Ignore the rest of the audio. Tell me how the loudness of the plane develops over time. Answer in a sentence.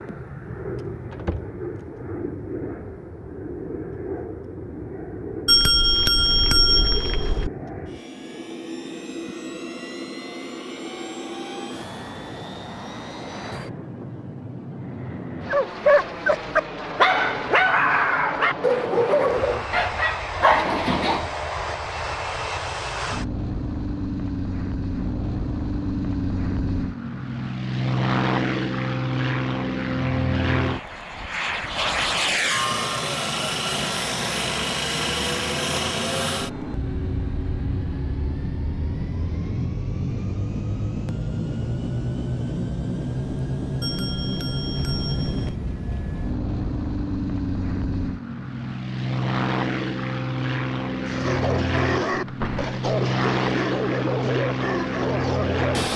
The loudness of the plane goes up.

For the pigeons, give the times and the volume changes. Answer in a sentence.
You can't hear the pigeons here.